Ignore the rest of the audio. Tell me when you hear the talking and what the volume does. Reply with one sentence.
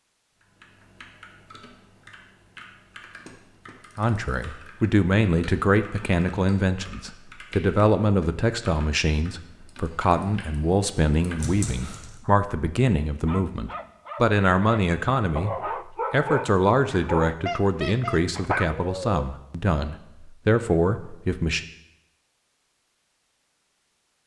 The talking can be heard from 4.0 to 21.6 s, at a steady volume.